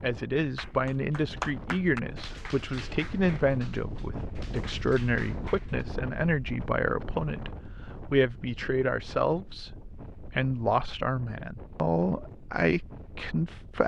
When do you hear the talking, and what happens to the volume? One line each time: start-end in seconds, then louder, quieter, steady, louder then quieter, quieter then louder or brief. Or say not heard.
0.0-13.8 steady.